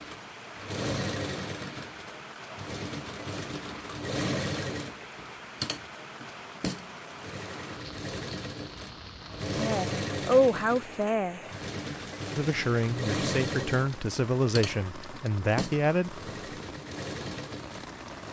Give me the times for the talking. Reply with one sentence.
You can hear the talking from 9.6 to 11.4 s and from 12.3 to 16.2 s.